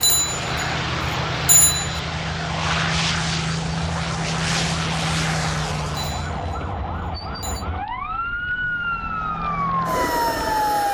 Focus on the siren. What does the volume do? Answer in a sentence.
The loudness of the siren goes up.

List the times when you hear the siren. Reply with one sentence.
The siren can be heard from 0.0 to 10.8 s.